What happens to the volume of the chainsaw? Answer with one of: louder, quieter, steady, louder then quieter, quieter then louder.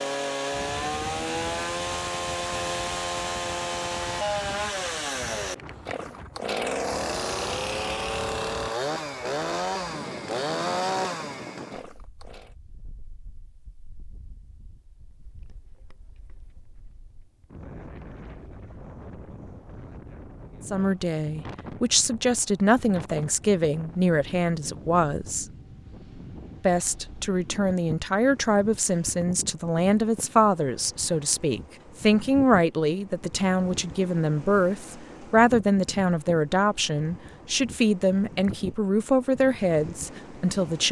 steady.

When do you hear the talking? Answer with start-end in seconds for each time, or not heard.
20.6-25.4, 26.6-40.8.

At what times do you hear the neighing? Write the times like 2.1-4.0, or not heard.
not heard.